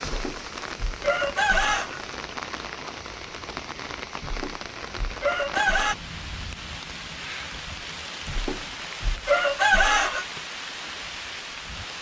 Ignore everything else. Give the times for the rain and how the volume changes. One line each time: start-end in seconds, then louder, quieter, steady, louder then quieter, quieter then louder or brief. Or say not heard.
0.0-11.9 steady.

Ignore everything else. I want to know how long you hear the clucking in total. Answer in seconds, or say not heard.
6 s.